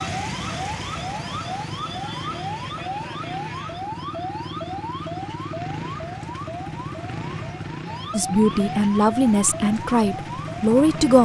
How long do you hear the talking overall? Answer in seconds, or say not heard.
3 s.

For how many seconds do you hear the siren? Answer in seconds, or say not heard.
11 s.